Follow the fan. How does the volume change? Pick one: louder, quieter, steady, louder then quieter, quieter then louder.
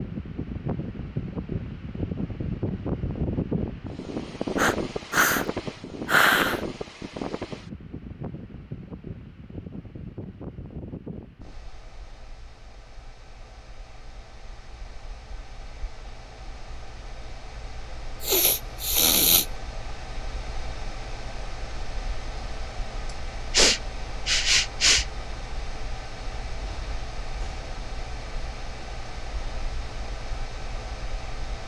quieter then louder.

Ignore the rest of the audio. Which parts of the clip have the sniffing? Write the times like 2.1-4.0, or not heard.
4.5-5.5, 6.0-6.6, 18.2-19.4, 23.5-25.1.